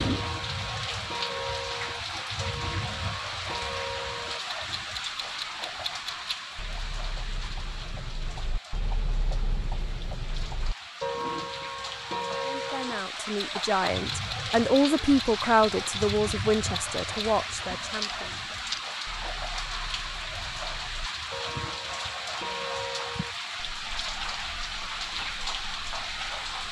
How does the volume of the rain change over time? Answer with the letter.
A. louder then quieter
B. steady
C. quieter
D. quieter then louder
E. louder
D.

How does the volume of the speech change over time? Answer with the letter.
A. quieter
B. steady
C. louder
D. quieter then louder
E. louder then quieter
E.